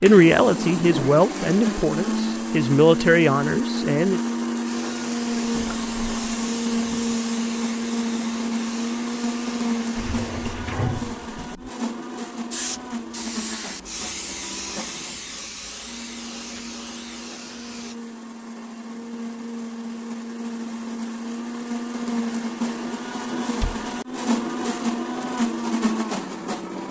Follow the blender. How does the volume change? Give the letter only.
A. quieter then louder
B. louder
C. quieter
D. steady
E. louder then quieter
A.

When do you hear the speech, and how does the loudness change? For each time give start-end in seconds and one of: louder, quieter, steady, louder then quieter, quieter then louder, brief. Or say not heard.
0.0-4.2 quieter then louder.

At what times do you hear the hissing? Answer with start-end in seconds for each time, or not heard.
4.7-10.6, 12.5-17.9.